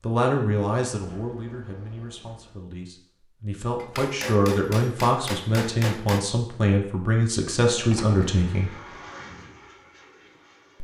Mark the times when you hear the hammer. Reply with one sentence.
You can hear the hammer from 3.8 to 6.2 s.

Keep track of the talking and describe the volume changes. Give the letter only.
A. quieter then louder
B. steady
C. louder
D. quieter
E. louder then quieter
A.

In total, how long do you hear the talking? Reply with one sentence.
You can hear the talking for 9 seconds altogether.